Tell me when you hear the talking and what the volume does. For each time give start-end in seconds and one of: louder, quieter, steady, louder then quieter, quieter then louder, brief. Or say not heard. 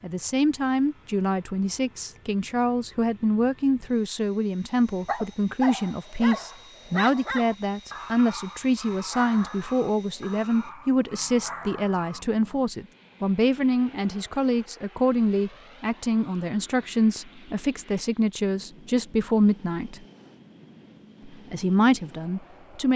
0.0-20.0 steady
21.2-22.9 brief.